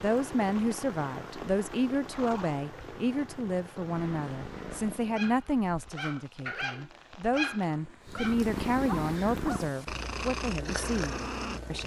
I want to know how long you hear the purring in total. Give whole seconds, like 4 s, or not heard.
9 s.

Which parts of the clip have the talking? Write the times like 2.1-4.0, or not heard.
0.0-11.8.